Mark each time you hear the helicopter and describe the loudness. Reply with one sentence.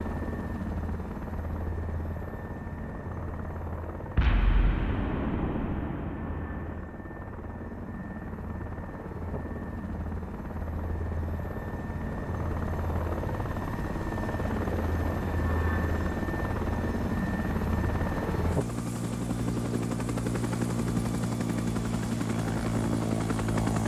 The helicopter can be heard from 0.0 to 23.8 s, getting louder.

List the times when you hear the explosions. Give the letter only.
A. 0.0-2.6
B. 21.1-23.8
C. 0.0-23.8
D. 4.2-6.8
D.